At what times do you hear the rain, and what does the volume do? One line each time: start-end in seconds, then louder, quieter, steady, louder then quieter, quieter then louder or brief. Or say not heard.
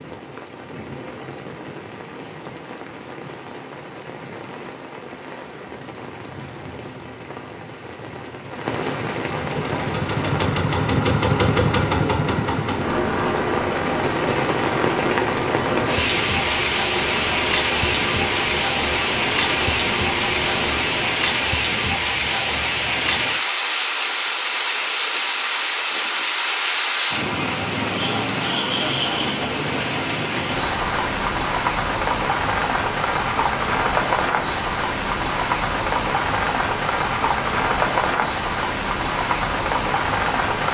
0.0-40.6 louder.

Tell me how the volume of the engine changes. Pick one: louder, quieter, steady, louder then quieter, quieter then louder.
quieter.